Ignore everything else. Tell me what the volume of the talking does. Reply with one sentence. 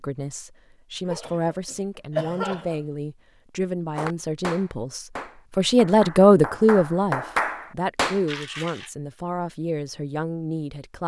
The volume of the talking goes up, then down.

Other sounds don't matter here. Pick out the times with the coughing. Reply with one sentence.
You can hear the coughing from 1.1 to 2.8 s and from 8.2 to 8.9 s.